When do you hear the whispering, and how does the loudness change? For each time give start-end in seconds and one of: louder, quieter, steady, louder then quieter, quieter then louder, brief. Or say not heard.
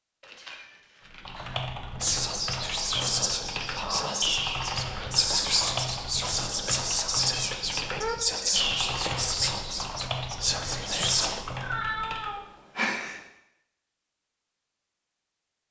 2.0-11.4 steady.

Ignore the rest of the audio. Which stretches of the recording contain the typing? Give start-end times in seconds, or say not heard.
1.1-12.4.